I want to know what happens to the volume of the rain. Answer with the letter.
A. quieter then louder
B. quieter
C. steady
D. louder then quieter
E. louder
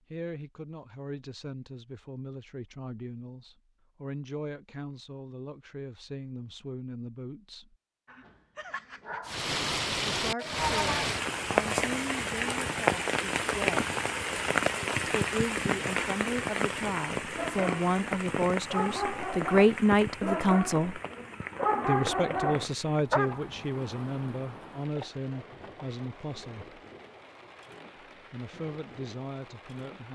B.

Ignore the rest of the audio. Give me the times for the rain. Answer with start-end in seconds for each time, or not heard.
9.2-30.0.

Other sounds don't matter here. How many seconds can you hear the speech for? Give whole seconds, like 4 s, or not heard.
24 s.